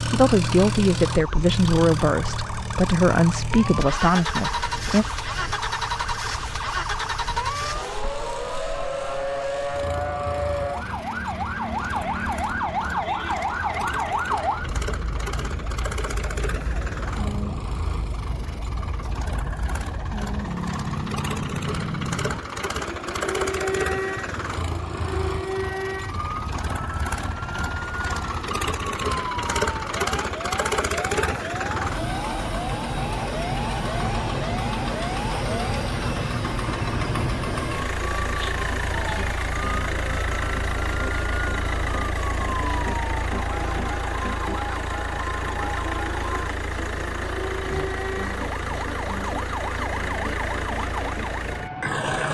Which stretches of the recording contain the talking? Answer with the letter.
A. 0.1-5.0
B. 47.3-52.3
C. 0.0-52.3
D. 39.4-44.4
A.